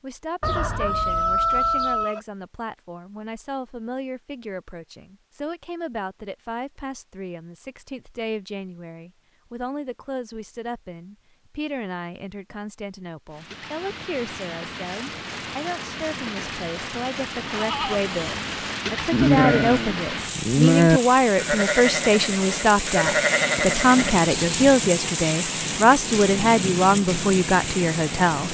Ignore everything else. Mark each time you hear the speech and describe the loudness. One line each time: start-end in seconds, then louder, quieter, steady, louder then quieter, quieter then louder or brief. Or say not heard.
0.0-28.4 louder.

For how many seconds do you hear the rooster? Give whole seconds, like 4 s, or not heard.
2 s.